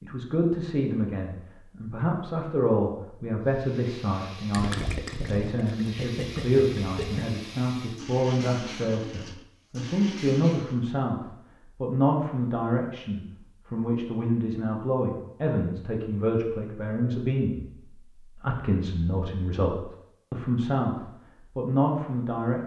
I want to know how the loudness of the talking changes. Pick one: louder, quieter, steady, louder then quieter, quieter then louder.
steady.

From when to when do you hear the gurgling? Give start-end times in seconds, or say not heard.
4.5-7.2.